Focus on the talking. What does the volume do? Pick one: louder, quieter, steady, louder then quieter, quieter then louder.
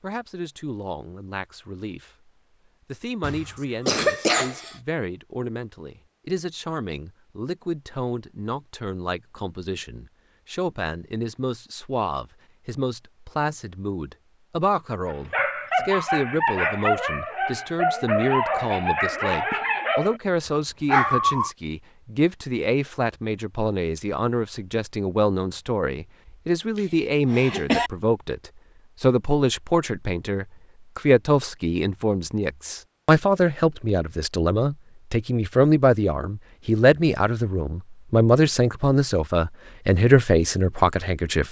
louder.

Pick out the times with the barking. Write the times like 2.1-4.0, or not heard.
15.1-21.5.